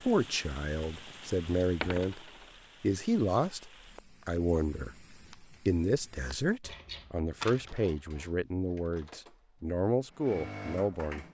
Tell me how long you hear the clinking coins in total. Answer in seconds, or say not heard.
2 s.